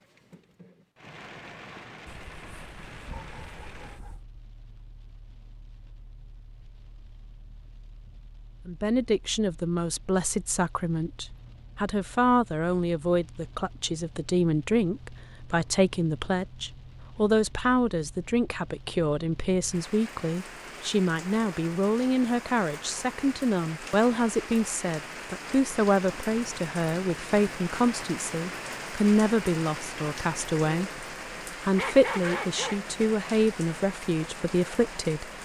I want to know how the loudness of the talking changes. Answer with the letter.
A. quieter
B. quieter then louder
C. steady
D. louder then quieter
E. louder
C.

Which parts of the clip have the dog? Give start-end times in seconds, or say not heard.
2.0-4.2, 31.8-32.8.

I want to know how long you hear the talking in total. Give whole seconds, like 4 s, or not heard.
27 s.